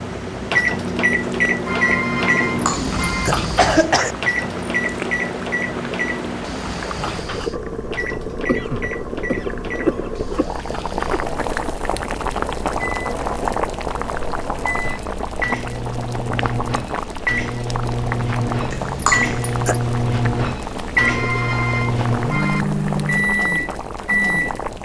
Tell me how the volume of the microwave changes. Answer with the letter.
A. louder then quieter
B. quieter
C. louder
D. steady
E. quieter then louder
E.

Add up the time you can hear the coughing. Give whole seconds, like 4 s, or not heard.
6 s.